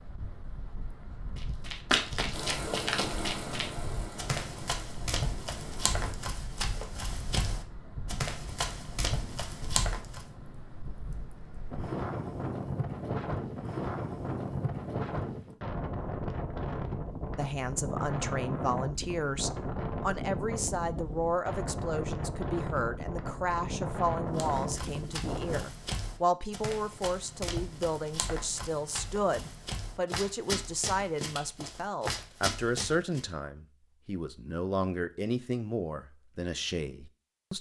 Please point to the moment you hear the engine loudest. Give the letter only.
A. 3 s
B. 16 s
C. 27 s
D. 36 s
A.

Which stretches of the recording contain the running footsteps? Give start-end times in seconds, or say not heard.
1.4-10.2, 24.4-33.2.